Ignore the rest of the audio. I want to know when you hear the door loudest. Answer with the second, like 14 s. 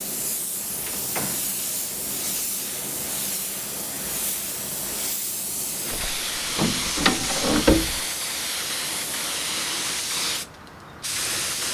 8 s.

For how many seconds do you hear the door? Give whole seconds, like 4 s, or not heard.
3 s.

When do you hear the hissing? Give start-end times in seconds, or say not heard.
0.0-11.6.